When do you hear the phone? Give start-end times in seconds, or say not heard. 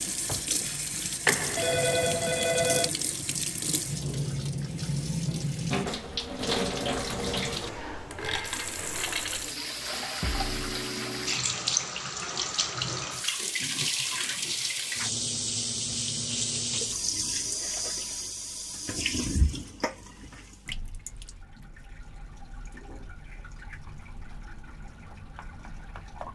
1.2-2.9.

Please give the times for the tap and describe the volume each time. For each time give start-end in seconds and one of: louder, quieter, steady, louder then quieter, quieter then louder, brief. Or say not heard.
0.0-26.2 quieter.